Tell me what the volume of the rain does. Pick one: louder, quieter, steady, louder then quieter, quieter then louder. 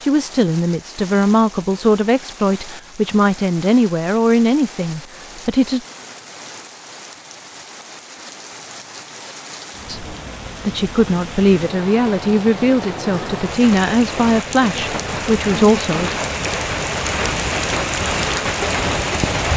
louder.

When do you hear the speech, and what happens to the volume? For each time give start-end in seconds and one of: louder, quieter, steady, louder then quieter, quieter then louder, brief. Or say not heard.
0.0-5.8 steady
9.8-16.1 steady.